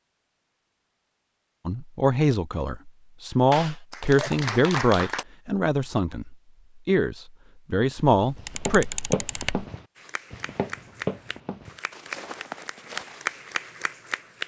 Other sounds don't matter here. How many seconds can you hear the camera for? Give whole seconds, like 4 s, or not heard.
2 s.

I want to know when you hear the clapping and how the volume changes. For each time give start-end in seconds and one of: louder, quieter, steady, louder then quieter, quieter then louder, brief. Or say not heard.
3.5-5.2 brief
9.9-14.4 quieter then louder.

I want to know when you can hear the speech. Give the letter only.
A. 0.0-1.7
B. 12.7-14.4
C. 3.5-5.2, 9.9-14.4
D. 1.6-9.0
D.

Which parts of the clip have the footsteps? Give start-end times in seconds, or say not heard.
7.8-13.3.